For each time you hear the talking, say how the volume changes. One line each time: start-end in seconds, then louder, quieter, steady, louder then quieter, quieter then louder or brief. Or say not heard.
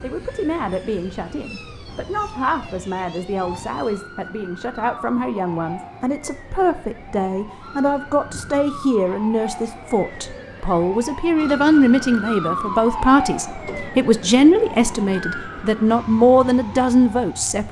0.0-17.6 louder.